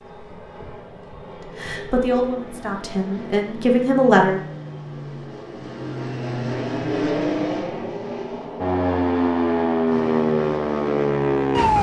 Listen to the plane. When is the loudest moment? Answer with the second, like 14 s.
7 s.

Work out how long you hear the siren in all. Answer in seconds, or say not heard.
3 s.